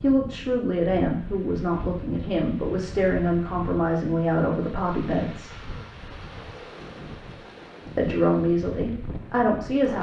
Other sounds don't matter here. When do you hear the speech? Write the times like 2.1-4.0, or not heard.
0.0-5.6, 8.0-9.9.